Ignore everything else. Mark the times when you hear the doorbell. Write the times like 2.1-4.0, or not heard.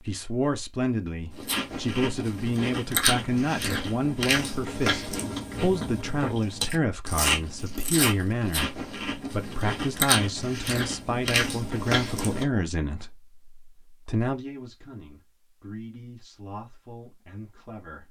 not heard.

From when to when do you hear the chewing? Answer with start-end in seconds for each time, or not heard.
1.4-12.4.